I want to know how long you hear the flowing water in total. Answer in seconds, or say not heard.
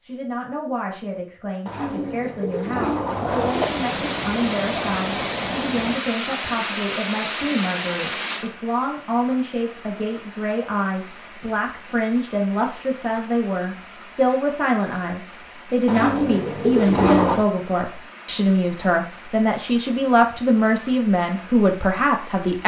19 s.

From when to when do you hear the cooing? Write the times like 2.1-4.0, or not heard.
1.6-3.6, 15.8-17.4.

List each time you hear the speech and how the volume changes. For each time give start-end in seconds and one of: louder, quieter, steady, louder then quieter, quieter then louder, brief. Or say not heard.
0.0-22.6 louder.